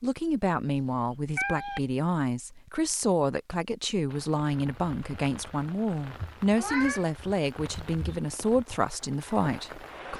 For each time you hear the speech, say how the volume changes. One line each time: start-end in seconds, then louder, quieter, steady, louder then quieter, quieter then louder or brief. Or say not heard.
0.0-10.1 steady.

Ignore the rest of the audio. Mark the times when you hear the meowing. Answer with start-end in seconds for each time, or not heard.
0.8-1.8, 6.5-7.1.